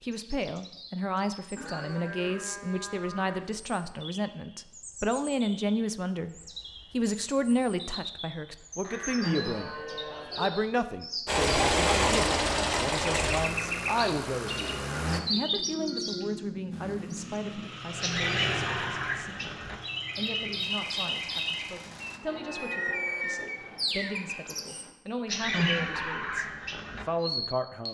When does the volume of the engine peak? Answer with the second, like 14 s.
12 s.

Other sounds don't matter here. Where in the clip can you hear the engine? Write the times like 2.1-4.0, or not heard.
11.2-15.2, 16.7-22.2.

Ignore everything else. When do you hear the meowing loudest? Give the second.
26 s.